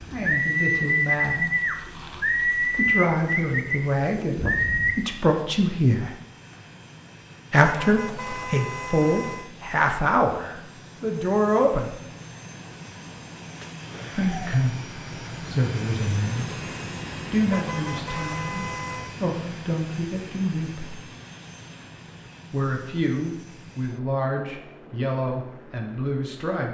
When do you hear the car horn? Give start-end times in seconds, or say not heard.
7.6-9.5, 17.4-19.2.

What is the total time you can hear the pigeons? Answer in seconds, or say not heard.
5 s.